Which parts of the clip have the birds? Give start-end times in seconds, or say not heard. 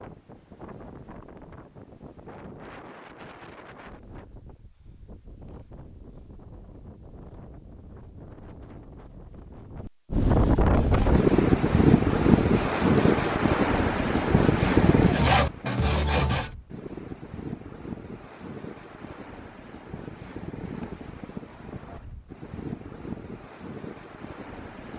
not heard.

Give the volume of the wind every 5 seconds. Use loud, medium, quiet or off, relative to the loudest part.
quiet, quiet, loud, quiet, quiet.